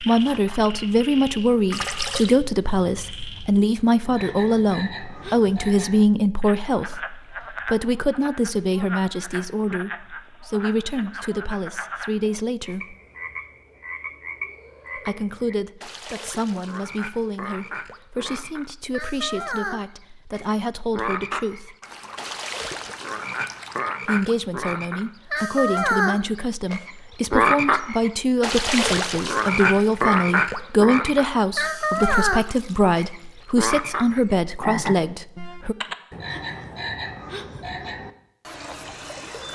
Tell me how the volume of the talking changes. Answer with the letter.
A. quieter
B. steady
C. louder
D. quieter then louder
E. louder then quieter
D.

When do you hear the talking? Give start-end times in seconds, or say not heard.
0.0-12.9, 14.9-21.8, 24.1-35.8.